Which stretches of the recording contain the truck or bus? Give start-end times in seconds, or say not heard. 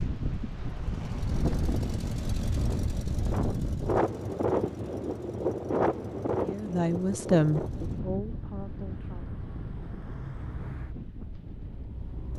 0.0-12.3.